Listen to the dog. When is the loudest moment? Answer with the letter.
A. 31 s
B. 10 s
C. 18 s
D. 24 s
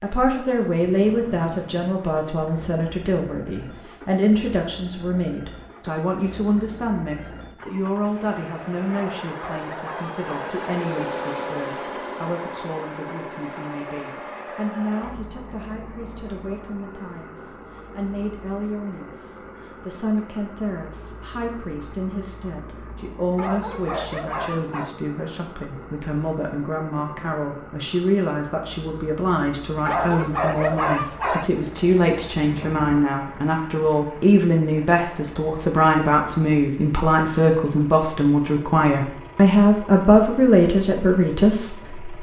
A.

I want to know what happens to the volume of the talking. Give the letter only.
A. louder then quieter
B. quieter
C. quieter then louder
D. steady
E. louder
C.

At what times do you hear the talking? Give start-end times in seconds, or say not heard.
0.0-42.1.